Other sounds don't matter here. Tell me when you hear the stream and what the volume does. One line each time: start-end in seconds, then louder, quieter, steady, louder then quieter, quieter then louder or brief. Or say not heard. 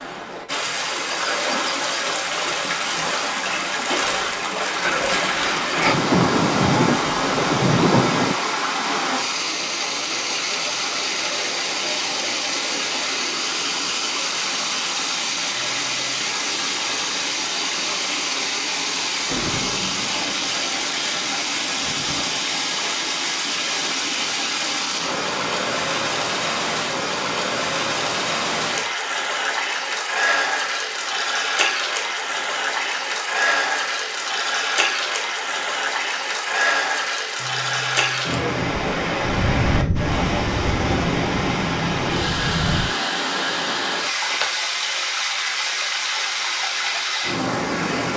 0.0-48.1 steady.